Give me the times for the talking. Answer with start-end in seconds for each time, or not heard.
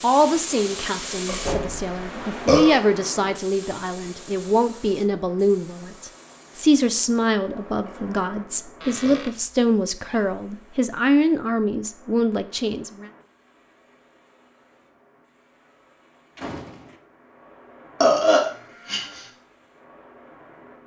0.0-13.1.